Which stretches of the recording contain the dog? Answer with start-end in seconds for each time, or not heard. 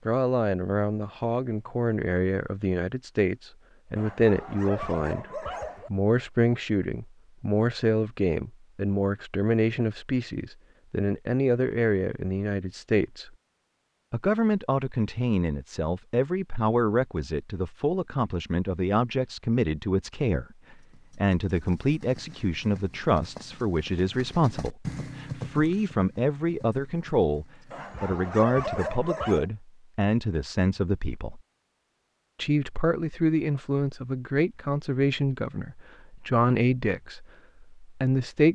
4.0-5.9, 27.7-29.4.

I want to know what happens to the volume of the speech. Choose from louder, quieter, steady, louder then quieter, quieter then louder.
steady.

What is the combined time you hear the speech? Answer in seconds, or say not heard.
37 s.